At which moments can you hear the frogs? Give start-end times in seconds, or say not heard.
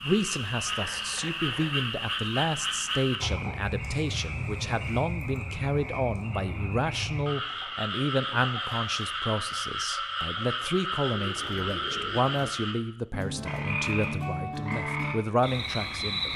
0.0-16.3.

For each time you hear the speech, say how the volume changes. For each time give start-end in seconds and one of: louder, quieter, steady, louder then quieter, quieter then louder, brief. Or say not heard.
0.0-16.3 steady.